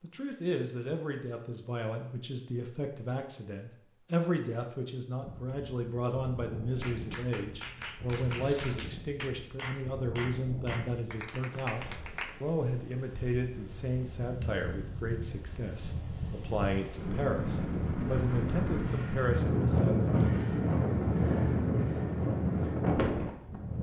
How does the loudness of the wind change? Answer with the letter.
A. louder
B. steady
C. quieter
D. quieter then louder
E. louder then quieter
A.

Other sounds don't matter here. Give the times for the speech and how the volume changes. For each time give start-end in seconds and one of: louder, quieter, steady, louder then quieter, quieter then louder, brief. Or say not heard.
0.0-20.2 steady.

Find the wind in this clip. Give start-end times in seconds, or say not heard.
5.2-23.7.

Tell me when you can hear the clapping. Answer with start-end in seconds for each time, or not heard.
6.8-12.4.